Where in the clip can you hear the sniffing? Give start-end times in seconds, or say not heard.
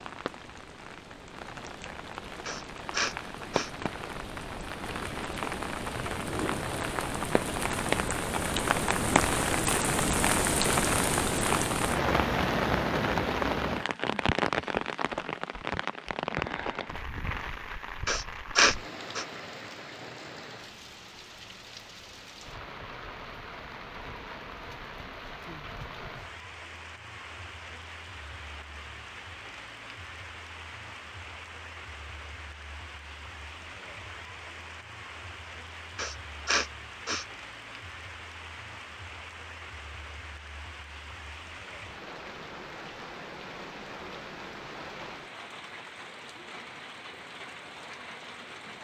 2.5-3.7, 18.1-19.2, 36.0-37.2.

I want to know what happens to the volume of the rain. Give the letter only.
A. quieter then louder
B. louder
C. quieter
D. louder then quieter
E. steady
C.